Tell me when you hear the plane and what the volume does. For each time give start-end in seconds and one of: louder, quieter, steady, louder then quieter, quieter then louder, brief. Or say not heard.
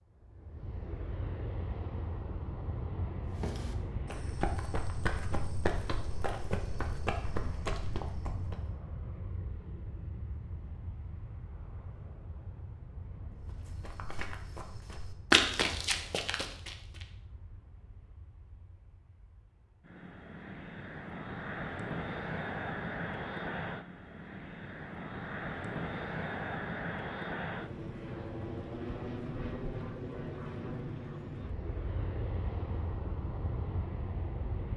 0.1-34.7 quieter then louder.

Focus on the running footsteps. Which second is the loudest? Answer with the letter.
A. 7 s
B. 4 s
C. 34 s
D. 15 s
D.